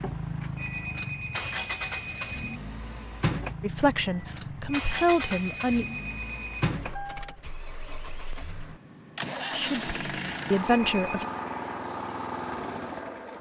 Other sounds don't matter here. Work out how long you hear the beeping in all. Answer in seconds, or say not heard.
5 s.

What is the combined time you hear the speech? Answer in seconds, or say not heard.
4 s.